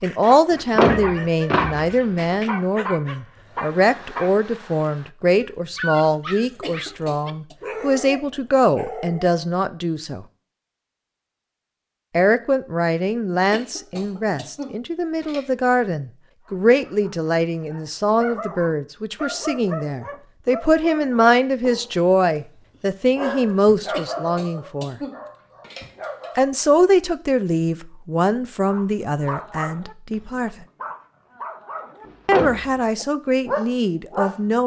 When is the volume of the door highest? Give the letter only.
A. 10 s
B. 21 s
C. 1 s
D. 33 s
C.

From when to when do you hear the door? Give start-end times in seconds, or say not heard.
0.5-2.2, 32.0-32.8.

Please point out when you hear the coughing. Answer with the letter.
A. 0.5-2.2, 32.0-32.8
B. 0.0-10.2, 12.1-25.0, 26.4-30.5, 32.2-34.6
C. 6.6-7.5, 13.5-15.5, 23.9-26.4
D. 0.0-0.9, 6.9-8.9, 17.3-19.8
C.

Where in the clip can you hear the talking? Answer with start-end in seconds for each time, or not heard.
0.0-10.2, 12.1-25.0, 26.4-30.5, 32.2-34.6.